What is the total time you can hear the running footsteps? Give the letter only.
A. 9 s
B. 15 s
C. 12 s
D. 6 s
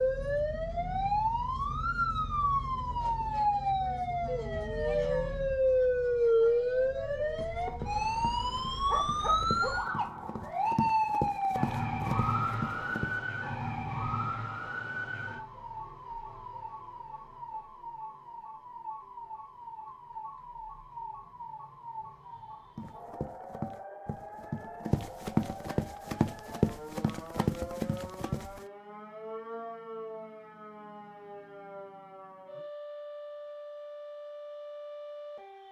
C.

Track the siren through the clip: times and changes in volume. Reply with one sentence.
The siren can be heard from 0.0 to 35.6 s, getting quieter.